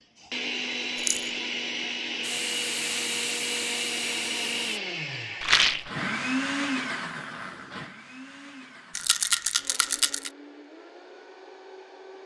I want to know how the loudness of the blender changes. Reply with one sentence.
The volume of the blender goes down.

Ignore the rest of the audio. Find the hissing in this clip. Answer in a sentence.
The hissing can be heard from 2.2 to 4.8 s.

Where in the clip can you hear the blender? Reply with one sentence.
You can hear the blender from 0.1 to 12.2 s.